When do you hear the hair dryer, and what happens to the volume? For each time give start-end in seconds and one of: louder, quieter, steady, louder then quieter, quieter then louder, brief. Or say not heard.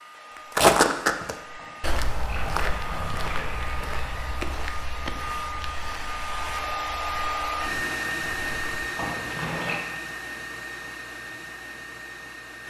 0.0-12.6 louder then quieter.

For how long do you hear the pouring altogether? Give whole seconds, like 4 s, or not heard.
4 s.